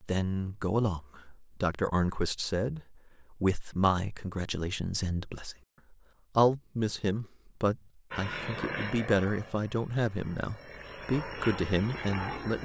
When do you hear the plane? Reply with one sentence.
You can hear the plane from 8.1 to 12.5 s.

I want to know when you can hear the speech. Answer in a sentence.
The speech can be heard from 0.0 to 5.5 s and from 6.3 to 12.5 s.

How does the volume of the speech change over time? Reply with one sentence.
The loudness of the speech stays about the same.